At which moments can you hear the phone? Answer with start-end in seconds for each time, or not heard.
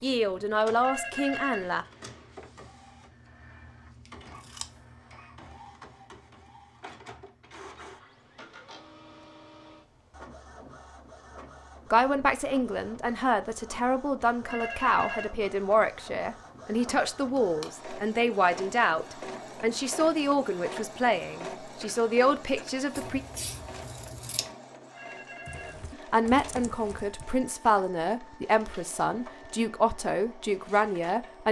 0.8-1.6, 14.4-15.3, 24.9-25.8.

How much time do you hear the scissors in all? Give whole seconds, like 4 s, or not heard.
3 s.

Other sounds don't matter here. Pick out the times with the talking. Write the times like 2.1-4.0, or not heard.
0.0-1.9, 11.9-23.2, 26.1-31.4.